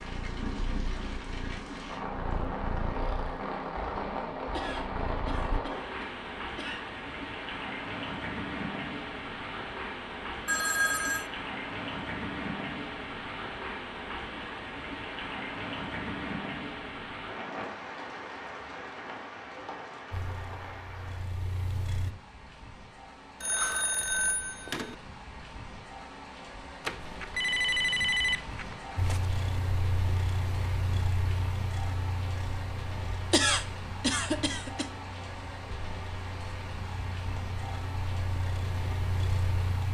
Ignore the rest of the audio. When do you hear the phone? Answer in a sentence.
The phone can be heard from 10.4 to 11.3 s, from 23.4 to 24.9 s and from 26.9 to 29.2 s.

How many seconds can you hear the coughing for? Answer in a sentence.
You can hear the coughing for 4 seconds altogether.